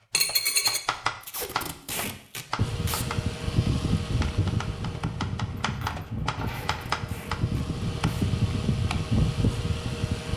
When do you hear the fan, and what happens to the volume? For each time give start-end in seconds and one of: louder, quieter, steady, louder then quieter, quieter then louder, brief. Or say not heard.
2.5-10.3 quieter then louder.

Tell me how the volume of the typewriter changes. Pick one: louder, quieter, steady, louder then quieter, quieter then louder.
quieter then louder.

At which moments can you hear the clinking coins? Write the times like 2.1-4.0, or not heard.
0.1-0.8, 5.6-7.0.